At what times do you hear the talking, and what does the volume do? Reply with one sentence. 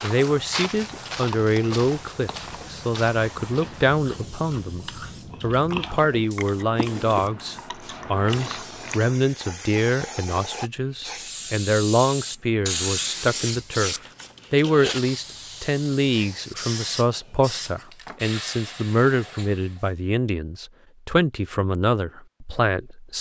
You can hear the talking from 0.0 to 23.1 s, at a steady volume.